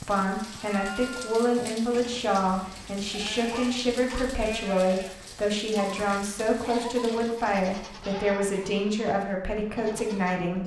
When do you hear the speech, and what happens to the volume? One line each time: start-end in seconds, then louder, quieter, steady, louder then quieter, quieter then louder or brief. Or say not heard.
0.0-10.6 steady.